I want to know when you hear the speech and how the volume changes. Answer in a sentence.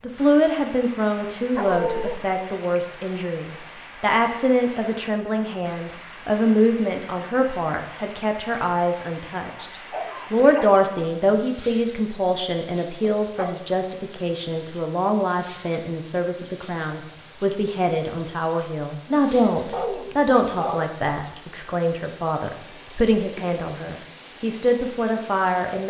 The speech can be heard from 0.0 to 25.8 s, at a steady volume.